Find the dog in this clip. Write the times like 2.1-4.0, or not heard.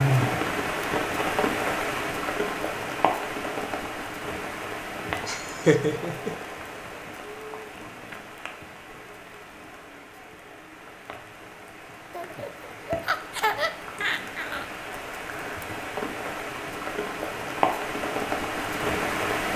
not heard.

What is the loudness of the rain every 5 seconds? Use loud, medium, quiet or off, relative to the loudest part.
loud, medium, quiet, loud.